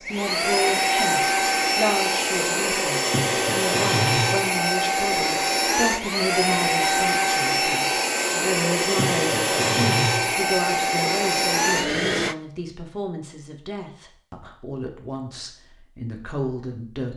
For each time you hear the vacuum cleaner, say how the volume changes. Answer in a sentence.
You can hear the vacuum cleaner from 0.0 to 12.3 s, at a steady volume.